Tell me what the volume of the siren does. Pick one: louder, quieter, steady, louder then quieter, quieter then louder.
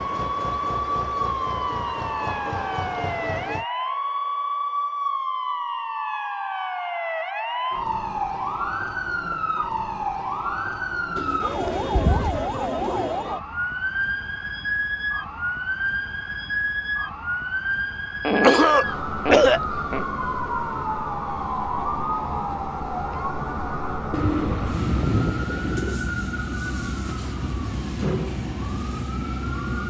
steady.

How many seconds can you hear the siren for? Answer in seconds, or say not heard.
30 s.